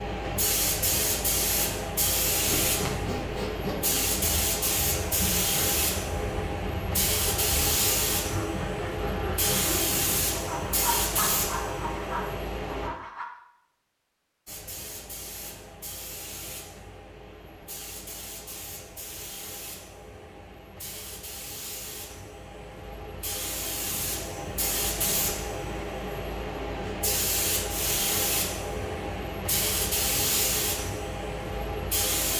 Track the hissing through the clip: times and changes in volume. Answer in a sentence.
You can hear the hissing from 0.0 to 12.9 s, at a steady volume; and from 14.4 to 32.3 s, getting louder.